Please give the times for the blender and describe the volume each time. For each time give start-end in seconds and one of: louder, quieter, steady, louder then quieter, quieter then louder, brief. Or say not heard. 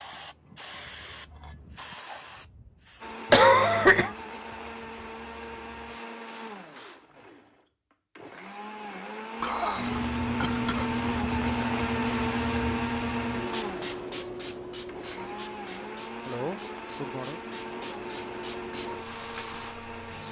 3.0-20.2 louder then quieter.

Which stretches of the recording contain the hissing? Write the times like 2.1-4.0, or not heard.
0.0-7.2, 9.8-20.2.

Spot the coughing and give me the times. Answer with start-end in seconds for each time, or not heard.
3.3-4.2, 9.4-10.9, 16.2-17.4.